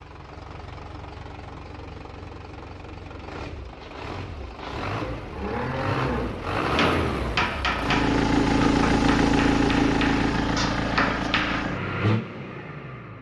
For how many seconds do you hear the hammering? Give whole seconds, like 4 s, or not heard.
5 s.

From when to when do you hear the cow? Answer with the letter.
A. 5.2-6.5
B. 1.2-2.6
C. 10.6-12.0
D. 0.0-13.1
A.